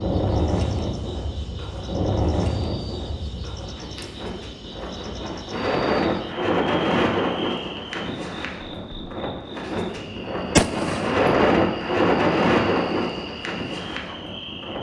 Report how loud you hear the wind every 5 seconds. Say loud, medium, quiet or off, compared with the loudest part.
medium, loud, loud.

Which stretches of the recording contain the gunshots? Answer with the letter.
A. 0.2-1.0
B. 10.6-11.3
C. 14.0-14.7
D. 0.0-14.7
B.